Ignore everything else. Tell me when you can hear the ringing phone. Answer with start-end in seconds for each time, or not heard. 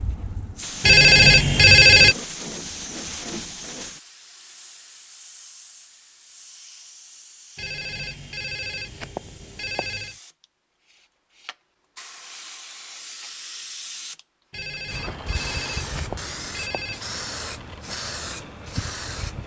0.8-2.1, 7.5-10.2, 14.5-17.0.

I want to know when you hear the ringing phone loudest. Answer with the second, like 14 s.
2 s.